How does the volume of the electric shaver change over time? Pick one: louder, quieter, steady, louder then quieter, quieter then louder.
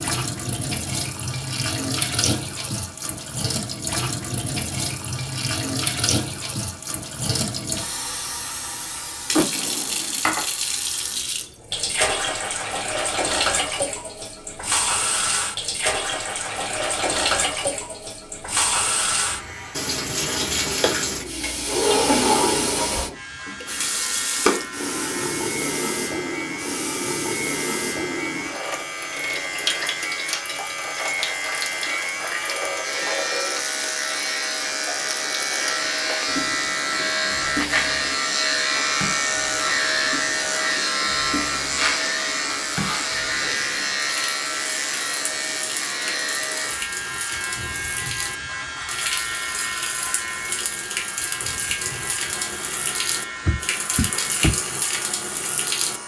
louder then quieter.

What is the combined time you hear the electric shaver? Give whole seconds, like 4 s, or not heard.
33 s.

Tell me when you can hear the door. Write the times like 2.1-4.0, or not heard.
9.3-10.2, 21.7-23.1, 53.5-54.5.